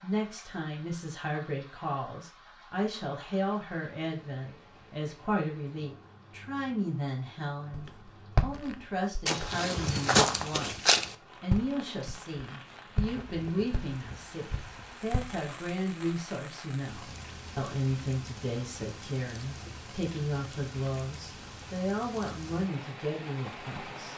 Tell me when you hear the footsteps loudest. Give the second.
10 s.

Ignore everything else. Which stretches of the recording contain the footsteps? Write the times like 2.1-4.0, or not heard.
7.7-15.4.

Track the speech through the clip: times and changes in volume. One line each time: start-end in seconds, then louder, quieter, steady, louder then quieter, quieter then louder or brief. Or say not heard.
0.0-24.1 steady.